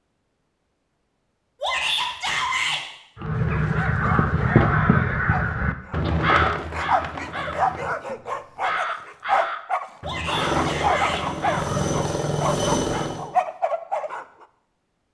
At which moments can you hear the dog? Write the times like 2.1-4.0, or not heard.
3.4-14.4.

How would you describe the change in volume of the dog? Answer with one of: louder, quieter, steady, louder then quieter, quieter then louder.
louder.